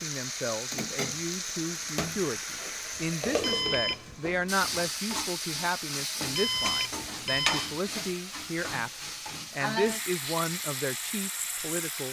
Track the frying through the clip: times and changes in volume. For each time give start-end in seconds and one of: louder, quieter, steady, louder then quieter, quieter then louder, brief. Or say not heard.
0.0-12.0 steady.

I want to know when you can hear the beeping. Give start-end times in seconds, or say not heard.
3.4-4.2, 6.3-7.8.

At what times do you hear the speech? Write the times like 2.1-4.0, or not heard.
0.0-12.0.